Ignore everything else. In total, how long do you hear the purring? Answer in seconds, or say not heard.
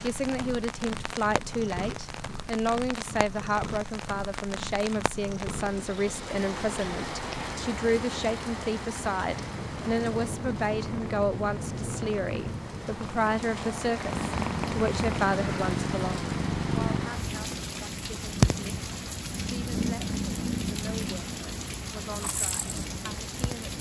24 s.